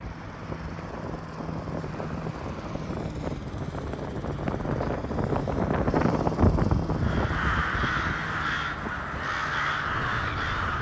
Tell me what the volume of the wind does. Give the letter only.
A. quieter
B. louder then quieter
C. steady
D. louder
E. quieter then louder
B.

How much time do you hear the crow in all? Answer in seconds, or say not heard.
4 s.